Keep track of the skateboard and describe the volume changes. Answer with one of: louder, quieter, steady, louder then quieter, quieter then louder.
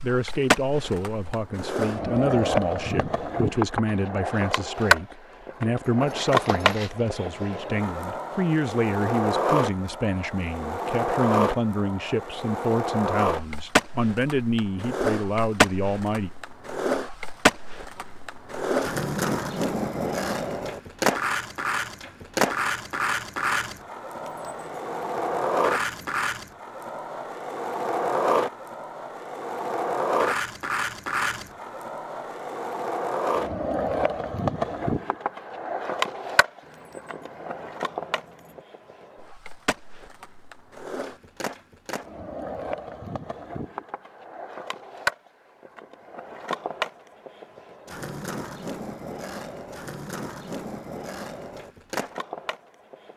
quieter.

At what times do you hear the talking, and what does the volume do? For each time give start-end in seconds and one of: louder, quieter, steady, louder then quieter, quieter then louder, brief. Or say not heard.
0.0-16.3 steady.